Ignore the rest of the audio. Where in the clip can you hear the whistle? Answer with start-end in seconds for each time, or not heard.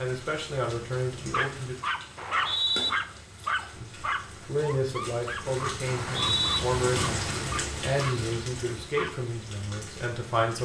2.1-2.9, 5.8-6.6.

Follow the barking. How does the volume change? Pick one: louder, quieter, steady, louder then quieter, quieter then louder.
quieter.